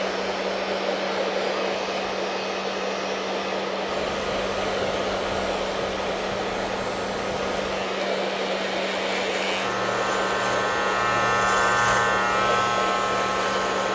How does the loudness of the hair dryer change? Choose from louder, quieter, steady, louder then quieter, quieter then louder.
steady.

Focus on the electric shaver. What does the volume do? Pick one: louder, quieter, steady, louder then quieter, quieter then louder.
louder.